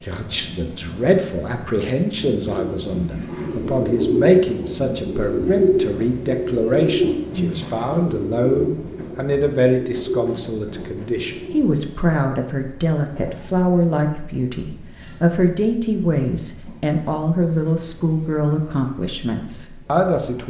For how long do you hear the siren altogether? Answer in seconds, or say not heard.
not heard.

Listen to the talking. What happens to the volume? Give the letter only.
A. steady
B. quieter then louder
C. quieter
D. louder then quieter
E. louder
A.